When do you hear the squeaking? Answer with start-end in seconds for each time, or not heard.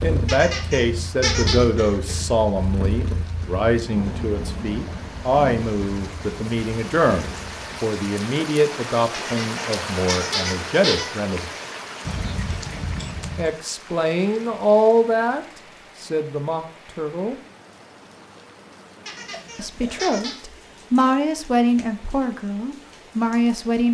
0.2-1.6, 9.1-11.1, 19.1-20.4.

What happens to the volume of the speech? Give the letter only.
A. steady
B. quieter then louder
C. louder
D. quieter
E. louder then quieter
A.